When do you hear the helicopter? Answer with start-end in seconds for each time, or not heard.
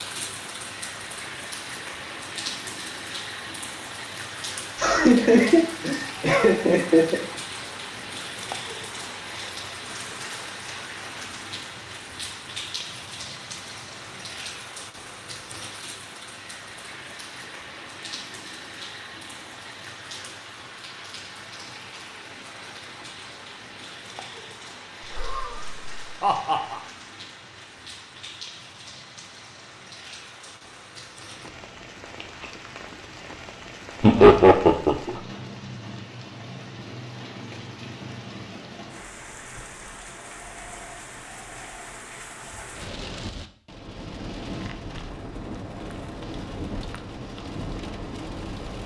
not heard.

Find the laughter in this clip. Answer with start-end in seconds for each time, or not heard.
4.8-7.2, 25.1-26.8, 34.0-35.2.